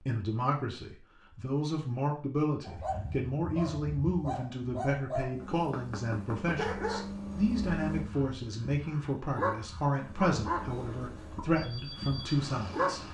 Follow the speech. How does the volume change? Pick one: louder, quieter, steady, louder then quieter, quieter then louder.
steady.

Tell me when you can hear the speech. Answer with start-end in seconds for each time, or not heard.
0.0-13.1.